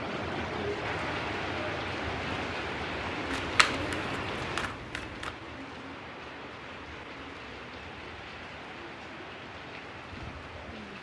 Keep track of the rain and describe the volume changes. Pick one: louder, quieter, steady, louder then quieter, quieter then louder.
quieter.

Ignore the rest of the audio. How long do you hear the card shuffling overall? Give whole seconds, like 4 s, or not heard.
2 s.